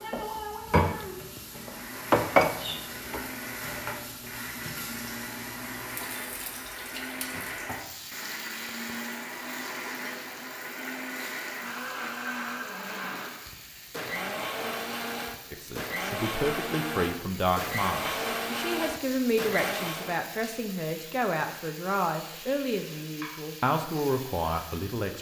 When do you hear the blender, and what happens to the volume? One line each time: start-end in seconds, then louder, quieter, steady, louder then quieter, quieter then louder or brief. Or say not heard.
1.4-20.2 louder.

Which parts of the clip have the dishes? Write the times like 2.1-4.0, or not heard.
0.0-3.2.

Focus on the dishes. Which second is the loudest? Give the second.
2 s.